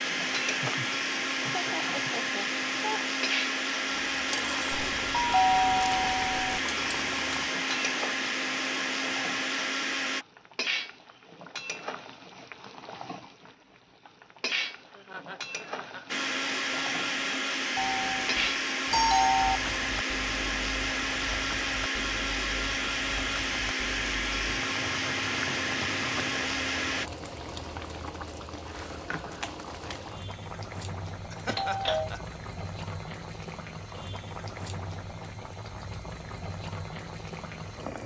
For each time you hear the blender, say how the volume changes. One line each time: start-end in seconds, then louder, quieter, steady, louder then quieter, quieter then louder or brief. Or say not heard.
0.0-10.2 steady
16.1-27.1 steady.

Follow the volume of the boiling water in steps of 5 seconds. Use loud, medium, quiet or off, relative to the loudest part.
loud, loud, loud, loud, medium, loud, loud, loud.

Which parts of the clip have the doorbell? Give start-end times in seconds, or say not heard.
4.7-6.6, 17.8-19.6, 31.4-32.1.